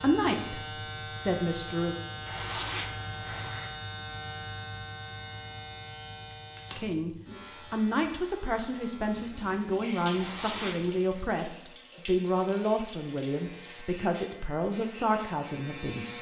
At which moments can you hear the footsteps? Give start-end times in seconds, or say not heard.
not heard.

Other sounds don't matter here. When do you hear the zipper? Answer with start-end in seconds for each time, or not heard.
2.2-3.8, 10.1-11.1.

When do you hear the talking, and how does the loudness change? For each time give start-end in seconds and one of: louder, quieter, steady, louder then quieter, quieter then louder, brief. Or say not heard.
0.0-1.9 brief
6.8-16.1 steady.